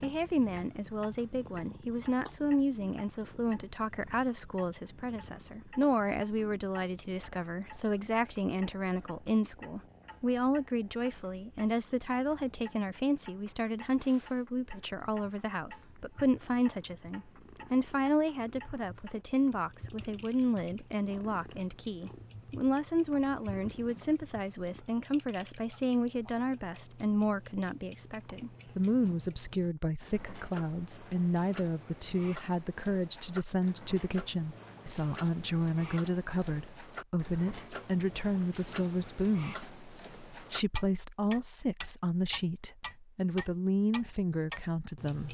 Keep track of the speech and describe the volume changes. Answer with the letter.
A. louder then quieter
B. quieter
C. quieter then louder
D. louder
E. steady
E.